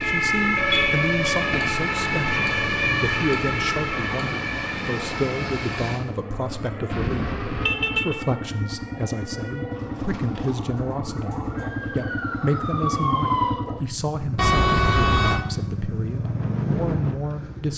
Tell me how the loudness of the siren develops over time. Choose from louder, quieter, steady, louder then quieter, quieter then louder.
quieter then louder.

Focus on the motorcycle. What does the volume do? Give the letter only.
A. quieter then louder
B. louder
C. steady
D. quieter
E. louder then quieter
B.